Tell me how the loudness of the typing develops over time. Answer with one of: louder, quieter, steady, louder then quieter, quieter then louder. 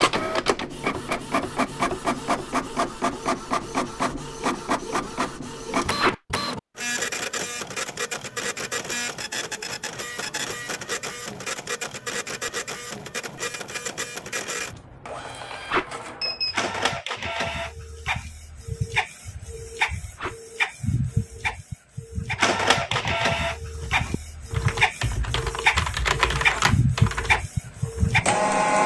louder then quieter.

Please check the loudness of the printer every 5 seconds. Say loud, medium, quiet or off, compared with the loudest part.
loud, medium, medium, medium, loud, loud.